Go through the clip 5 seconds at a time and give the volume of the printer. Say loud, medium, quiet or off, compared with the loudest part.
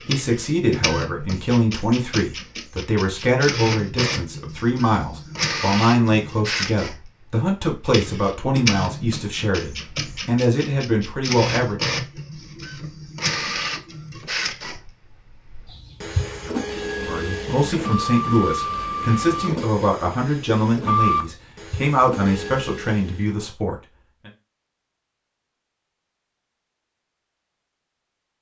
loud, loud, loud, loud, loud, off.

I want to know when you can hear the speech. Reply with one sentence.
You can hear the speech from 0.1 to 12.0 s and from 17.0 to 24.3 s.